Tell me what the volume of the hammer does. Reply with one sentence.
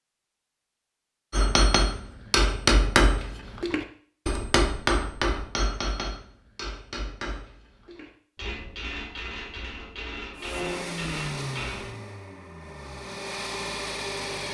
The volume of the hammer goes down.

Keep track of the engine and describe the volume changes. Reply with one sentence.
The loudness of the engine goes down, then up.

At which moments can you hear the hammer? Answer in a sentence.
The hammer can be heard from 1.3 to 11.9 s.